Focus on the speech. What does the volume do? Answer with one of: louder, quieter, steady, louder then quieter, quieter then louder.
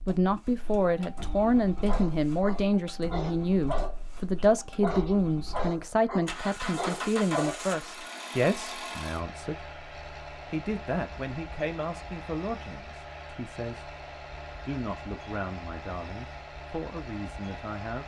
quieter.